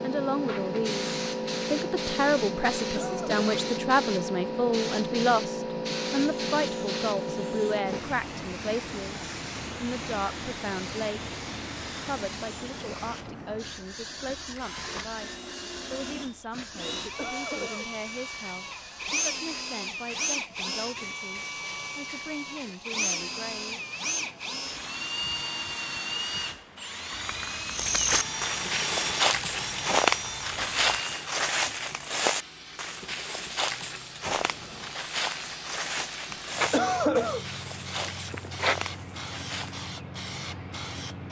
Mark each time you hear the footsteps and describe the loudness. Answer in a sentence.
You can hear the footsteps from 27.7 to 39.9 s, getting quieter.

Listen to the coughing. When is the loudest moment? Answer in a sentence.
The volume of the coughing peaks at 37 seconds.